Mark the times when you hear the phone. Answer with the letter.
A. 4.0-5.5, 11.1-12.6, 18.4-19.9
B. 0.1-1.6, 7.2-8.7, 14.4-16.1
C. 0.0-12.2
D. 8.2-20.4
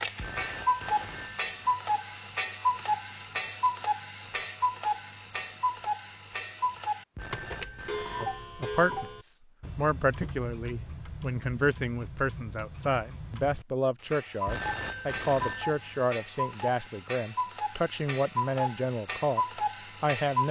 B.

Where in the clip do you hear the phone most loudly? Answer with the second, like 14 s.
15 s.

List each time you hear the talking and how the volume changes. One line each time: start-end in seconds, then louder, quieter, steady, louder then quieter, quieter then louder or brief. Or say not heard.
8.2-20.4 steady.